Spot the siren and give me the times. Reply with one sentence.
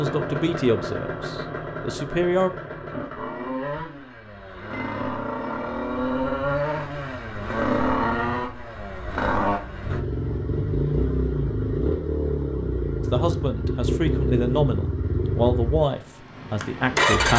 You can't hear the siren here.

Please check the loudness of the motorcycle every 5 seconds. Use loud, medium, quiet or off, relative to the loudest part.
medium, loud, loud, loud.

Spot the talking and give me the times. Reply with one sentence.
You can hear the talking from 0.0 to 2.5 s and from 13.1 to 17.3 s.